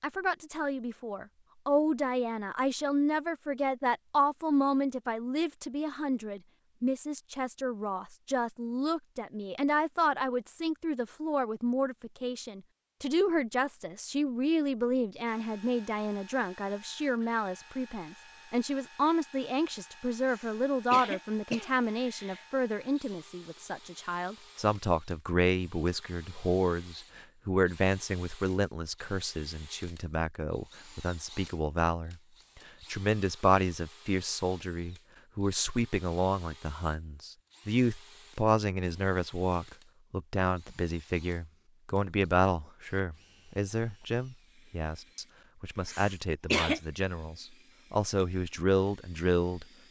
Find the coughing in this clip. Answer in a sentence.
The coughing can be heard from 20.2 to 22.4 s and from 45.9 to 46.8 s.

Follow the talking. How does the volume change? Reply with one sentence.
The loudness of the talking stays about the same.